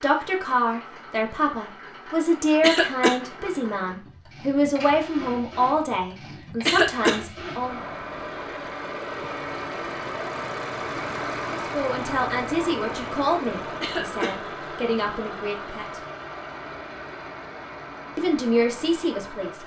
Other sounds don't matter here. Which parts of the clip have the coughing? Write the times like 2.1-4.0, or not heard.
2.6-3.2, 6.7-7.2, 13.8-14.3.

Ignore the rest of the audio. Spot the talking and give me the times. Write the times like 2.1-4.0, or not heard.
0.0-7.8, 11.6-16.1, 18.1-19.6.